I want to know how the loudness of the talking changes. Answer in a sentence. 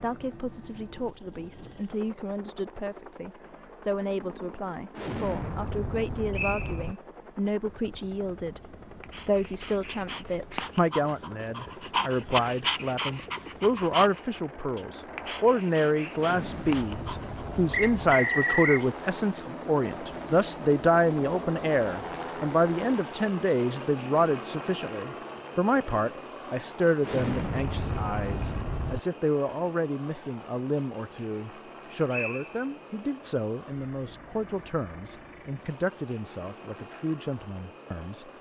The loudness of the talking goes up, then down.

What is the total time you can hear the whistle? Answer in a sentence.
The whistle can be heard for 2 seconds in total.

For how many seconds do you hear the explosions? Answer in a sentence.
You can hear the explosions for 6 seconds altogether.